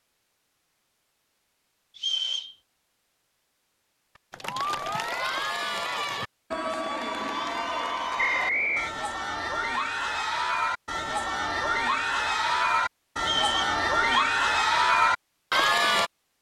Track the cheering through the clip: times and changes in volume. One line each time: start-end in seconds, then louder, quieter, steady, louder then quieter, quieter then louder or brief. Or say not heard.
4.3-16.1 louder.